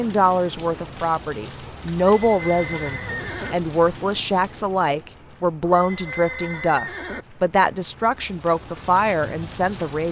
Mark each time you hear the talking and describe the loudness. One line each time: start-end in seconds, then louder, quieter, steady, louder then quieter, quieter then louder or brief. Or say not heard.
0.0-10.0 steady.